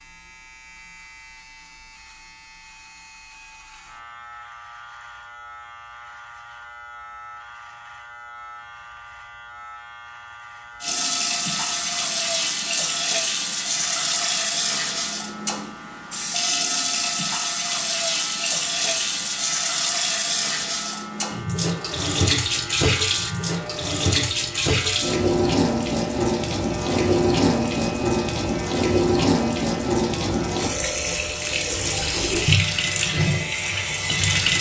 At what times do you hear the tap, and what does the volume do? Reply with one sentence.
The tap can be heard from 10.8 to 34.5 s, at a steady volume.